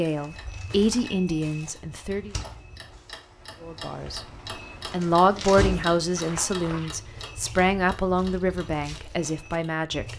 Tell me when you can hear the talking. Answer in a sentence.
The talking can be heard from 0.0 to 2.4 s, from 3.6 to 4.2 s and from 4.9 to 10.1 s.